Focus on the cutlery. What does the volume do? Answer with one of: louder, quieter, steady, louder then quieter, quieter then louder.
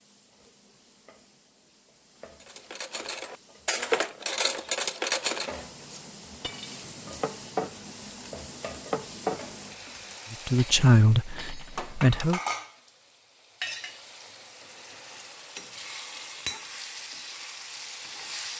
quieter.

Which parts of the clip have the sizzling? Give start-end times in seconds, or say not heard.
0.0-18.5.